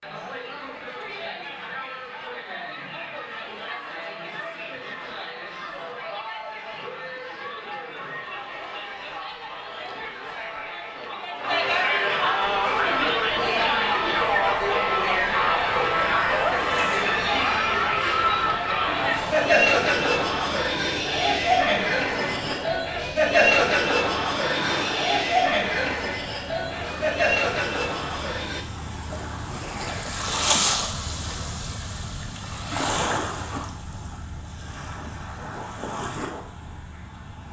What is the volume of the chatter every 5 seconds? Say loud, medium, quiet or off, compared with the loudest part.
quiet, quiet, loud, loud, loud, loud, off, off.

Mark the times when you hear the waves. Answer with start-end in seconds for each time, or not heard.
12.4-37.4.